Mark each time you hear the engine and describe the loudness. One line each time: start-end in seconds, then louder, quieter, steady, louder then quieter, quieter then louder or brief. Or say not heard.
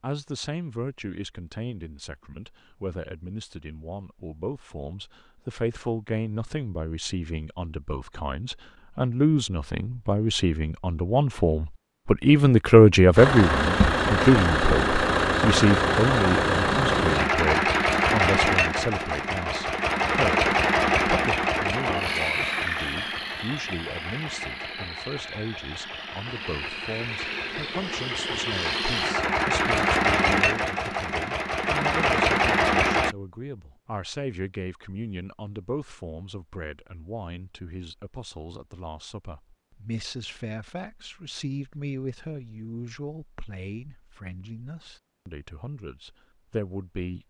13.2-33.1 quieter then louder.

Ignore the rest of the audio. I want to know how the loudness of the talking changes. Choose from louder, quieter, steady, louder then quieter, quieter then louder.
louder then quieter.